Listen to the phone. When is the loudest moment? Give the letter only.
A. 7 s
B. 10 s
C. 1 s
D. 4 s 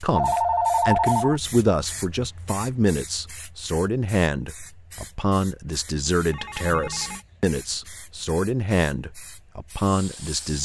C.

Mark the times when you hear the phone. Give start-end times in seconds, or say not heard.
0.1-1.4, 6.3-7.2.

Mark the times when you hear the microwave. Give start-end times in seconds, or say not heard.
not heard.